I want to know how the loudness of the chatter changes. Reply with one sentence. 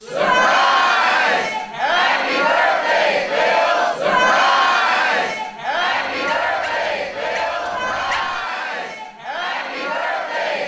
The loudness of the chatter goes down.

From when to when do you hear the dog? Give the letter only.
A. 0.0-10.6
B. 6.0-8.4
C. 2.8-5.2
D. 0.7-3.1
B.